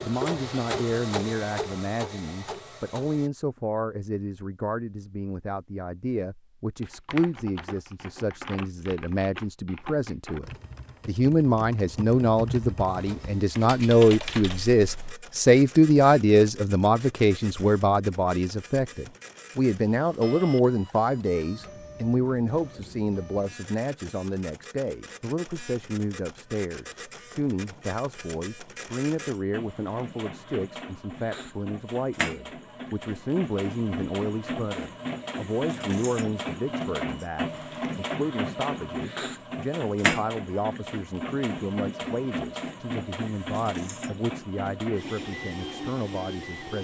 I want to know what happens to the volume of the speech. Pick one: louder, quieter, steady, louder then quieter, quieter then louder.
louder then quieter.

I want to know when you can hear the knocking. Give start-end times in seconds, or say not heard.
not heard.